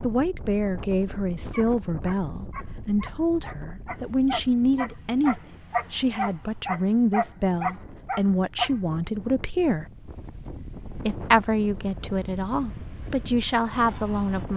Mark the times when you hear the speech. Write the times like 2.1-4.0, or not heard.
0.0-9.8, 11.1-14.5.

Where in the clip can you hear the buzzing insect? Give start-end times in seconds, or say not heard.
not heard.